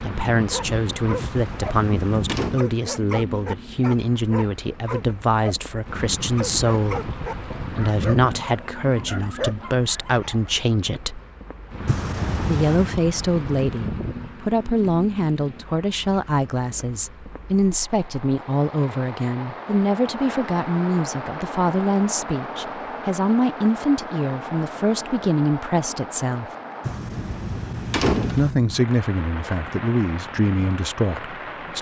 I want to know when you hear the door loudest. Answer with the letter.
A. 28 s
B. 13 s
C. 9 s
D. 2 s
A.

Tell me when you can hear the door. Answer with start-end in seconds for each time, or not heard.
1.3-2.6, 11.8-12.9, 26.9-28.6.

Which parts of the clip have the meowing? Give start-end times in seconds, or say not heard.
not heard.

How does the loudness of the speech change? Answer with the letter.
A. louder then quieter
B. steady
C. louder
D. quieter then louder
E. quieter
B.